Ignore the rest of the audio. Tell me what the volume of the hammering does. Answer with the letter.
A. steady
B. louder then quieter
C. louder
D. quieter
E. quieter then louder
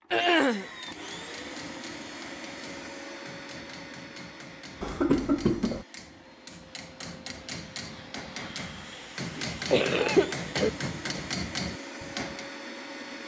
C.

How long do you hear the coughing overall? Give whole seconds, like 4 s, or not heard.
3 s.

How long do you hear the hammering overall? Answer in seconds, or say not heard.
12 s.